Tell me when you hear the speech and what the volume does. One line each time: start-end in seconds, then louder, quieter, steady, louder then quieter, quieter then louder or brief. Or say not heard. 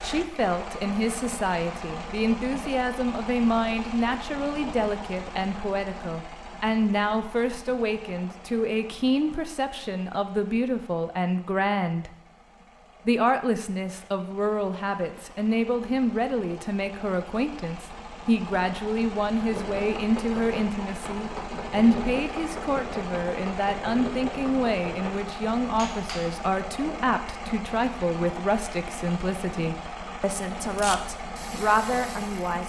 0.0-12.1 steady
13.1-32.6 steady.